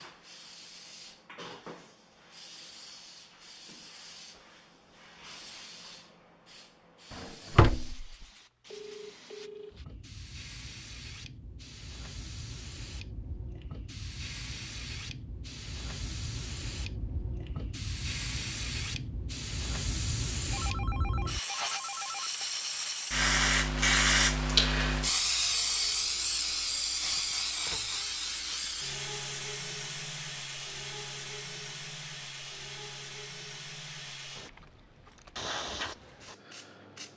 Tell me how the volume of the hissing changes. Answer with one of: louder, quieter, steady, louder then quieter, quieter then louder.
louder then quieter.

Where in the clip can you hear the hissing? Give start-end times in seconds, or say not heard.
0.0-37.1.